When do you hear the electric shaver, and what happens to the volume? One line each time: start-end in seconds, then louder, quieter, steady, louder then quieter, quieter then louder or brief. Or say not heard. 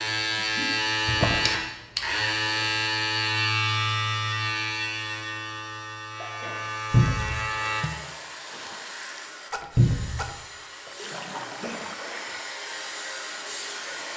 0.0-7.8 quieter.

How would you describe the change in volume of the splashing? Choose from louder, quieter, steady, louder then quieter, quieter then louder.
louder.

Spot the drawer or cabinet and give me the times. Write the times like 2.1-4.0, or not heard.
1.1-1.6, 6.9-7.5, 9.8-10.2.